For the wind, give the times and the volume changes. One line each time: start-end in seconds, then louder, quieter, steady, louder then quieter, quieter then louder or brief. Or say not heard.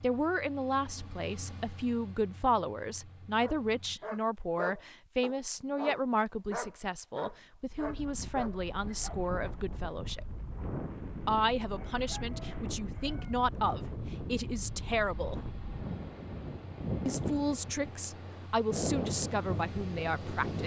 7.7-20.6 louder.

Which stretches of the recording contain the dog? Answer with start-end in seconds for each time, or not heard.
3.4-9.3.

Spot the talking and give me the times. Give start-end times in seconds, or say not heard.
0.0-10.2, 11.2-15.4, 17.1-20.6.